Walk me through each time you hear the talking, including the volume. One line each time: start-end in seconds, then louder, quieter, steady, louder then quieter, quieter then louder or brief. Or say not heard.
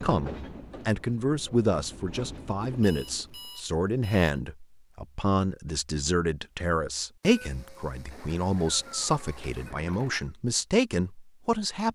0.0-11.8 steady.